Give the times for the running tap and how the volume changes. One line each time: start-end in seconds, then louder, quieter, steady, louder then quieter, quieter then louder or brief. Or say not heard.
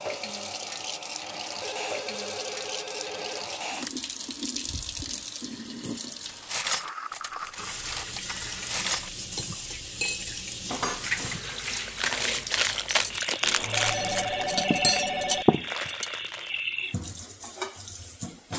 0.0-18.5 steady.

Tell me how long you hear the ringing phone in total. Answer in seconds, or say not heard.
6 s.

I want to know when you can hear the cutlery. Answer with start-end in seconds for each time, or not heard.
6.2-16.1.